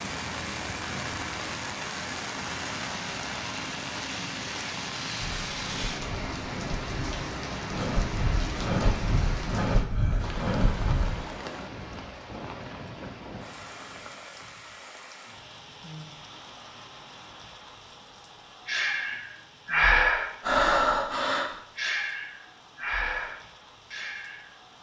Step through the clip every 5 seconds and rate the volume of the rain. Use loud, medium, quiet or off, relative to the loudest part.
loud, loud, medium, quiet, quiet.